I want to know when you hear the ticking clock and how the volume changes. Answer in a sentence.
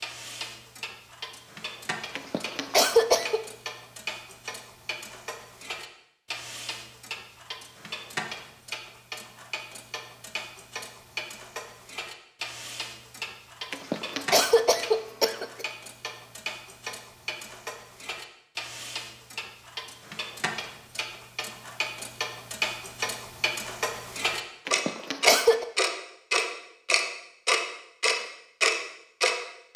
You can hear the ticking clock from 0.0 to 29.7 s, getting louder.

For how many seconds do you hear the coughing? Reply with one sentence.
The coughing can be heard for 4 seconds in total.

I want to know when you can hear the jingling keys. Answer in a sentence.
You can't hear the jingling keys here.